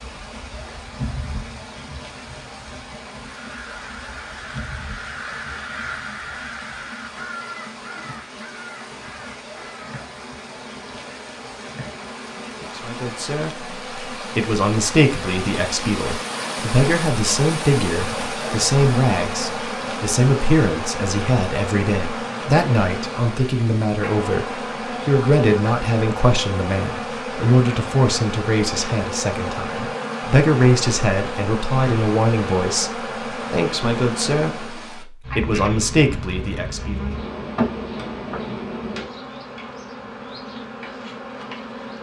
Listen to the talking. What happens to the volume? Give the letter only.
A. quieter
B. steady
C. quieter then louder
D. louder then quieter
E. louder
B.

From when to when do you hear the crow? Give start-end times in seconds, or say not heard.
3.2-10.0.